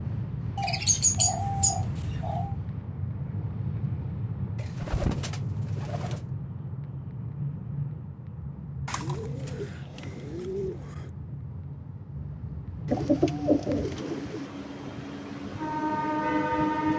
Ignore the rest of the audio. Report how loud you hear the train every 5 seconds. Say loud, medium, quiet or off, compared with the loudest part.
medium, medium, medium, loud.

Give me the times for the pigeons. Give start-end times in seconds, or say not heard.
0.6-2.5, 4.5-6.2, 8.8-11.1, 12.8-14.5.